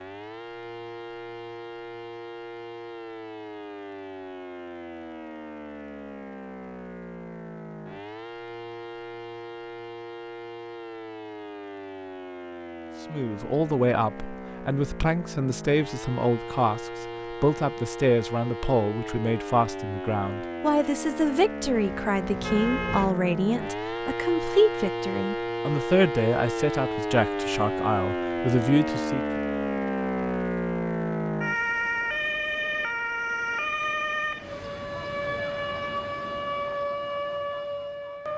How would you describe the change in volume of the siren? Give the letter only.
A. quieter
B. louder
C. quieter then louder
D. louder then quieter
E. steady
B.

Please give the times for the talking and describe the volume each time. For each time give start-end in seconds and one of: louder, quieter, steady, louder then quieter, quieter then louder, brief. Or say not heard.
13.1-29.2 steady.